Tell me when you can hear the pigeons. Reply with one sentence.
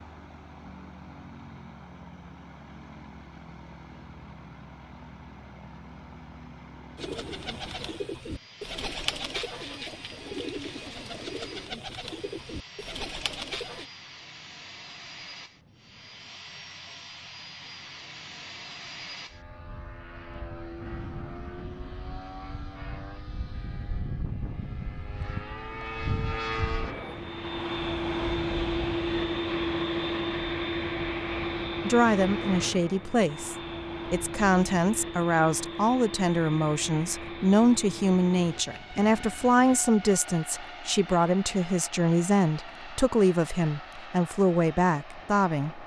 The pigeons can be heard from 7.0 to 13.8 s.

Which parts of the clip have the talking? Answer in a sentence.
The talking can be heard from 31.9 to 45.8 s.